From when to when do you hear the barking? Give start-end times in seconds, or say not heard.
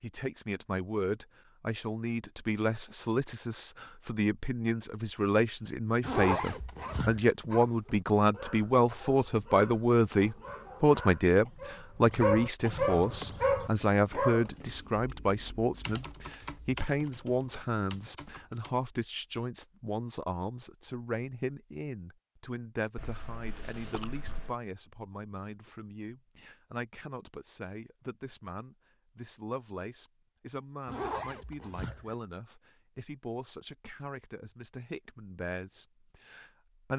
6.6-14.5.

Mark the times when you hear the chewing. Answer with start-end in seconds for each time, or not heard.
22.9-24.6.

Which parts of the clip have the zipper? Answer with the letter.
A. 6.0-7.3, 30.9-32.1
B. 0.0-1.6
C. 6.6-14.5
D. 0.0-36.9
A.